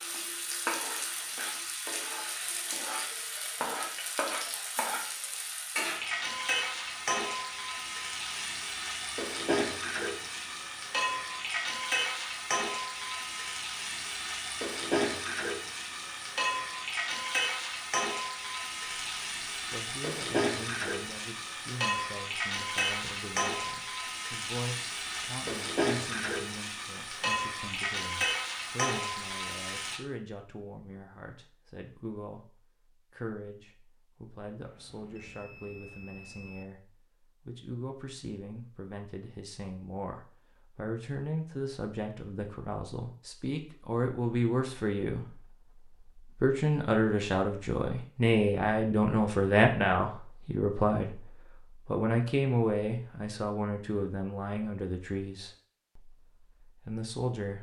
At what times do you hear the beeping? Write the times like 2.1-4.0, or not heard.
34.6-36.6.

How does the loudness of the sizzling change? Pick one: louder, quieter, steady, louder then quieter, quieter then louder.
steady.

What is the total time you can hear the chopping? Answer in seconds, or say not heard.
not heard.